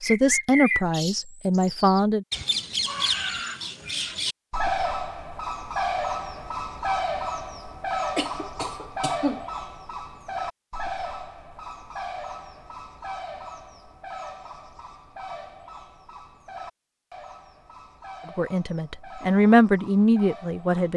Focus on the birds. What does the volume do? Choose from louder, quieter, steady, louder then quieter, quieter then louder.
quieter.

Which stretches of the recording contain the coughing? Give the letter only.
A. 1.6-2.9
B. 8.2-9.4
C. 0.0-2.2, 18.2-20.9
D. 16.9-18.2
B.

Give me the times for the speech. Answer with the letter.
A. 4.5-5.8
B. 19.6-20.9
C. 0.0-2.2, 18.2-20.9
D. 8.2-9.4
C.